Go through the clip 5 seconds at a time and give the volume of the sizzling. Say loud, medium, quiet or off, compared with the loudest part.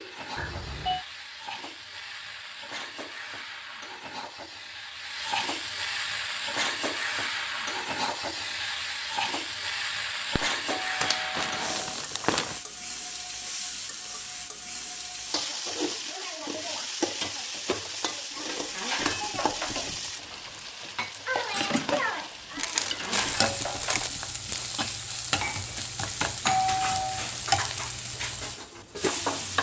medium, loud, loud, loud, loud, loud.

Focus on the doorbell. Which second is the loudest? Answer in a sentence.
The loudest moment of the doorbell is at 27 seconds.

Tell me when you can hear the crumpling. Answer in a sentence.
The crumpling can be heard from 11.0 to 12.6 s and from 22.6 to 24.1 s.